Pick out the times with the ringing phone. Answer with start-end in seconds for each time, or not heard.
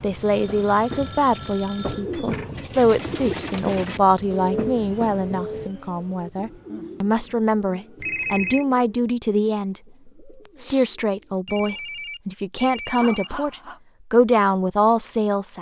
0.2-2.1, 8.0-8.7, 11.4-13.8.